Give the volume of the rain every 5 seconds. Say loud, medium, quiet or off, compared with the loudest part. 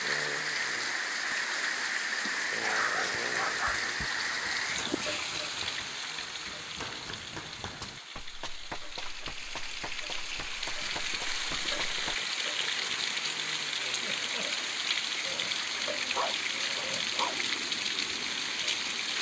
loud, medium, loud, loud.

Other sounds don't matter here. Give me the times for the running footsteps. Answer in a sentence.
The running footsteps can be heard from 3.8 to 12.2 s.